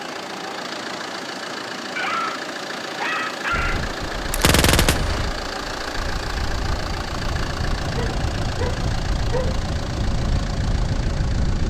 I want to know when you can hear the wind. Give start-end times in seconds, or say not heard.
3.5-11.6.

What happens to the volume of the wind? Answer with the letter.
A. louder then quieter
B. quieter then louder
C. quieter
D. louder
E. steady
D.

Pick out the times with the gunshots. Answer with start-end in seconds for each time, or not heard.
4.3-5.2.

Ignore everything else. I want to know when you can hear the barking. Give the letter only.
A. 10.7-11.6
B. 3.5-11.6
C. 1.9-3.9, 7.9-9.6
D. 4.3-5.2
C.